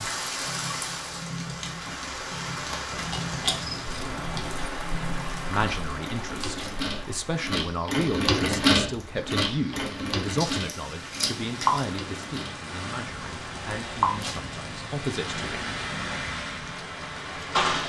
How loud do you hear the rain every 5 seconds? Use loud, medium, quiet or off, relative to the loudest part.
loud, medium, loud, loud.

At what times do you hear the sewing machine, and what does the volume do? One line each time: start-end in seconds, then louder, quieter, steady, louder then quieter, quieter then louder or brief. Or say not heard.
0.0-17.8 louder then quieter.